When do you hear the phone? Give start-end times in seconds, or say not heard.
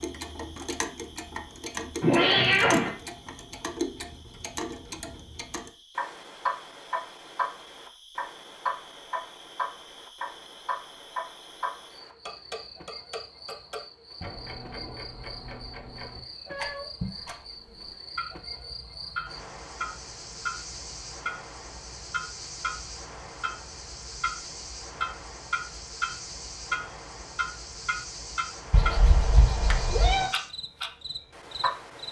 not heard.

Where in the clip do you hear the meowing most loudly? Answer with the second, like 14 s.
2 s.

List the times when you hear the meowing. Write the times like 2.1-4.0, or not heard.
2.0-2.9, 16.4-17.1, 28.7-30.3.